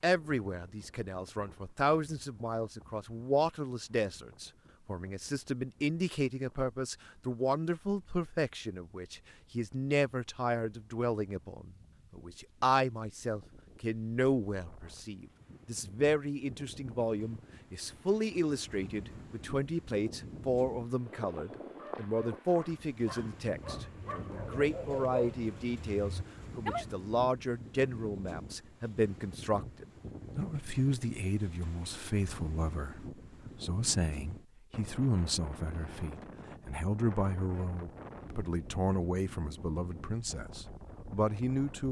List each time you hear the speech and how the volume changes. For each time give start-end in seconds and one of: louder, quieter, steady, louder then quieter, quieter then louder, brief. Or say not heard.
0.0-41.8 steady.